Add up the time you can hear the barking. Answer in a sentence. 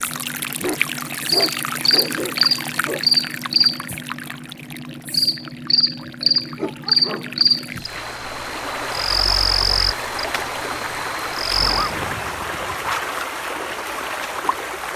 The barking can be heard for 5 seconds in total.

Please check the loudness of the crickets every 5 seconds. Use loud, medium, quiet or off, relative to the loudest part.
loud, loud, medium.